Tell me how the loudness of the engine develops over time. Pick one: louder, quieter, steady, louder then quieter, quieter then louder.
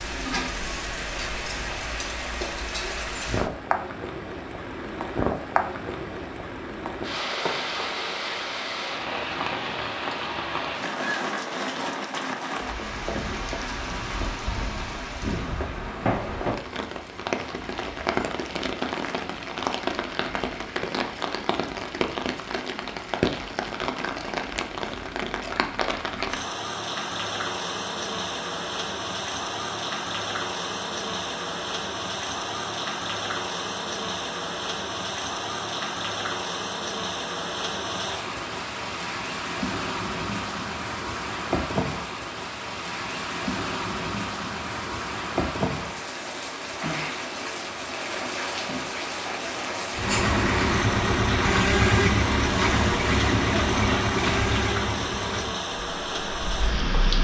quieter.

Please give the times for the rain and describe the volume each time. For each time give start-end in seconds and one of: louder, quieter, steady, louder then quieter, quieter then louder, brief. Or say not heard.
0.0-57.2 steady.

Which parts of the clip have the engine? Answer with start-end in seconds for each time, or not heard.
49.9-57.2.